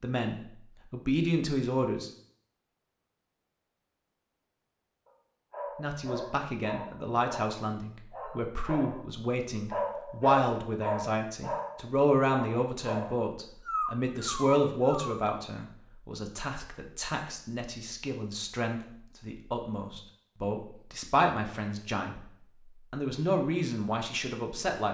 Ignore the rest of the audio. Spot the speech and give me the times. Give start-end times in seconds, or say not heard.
0.0-2.1, 5.8-22.2, 22.9-24.9.